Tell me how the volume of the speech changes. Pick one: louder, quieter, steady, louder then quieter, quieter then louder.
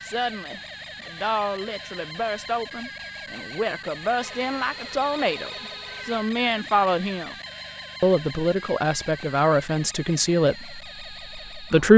louder.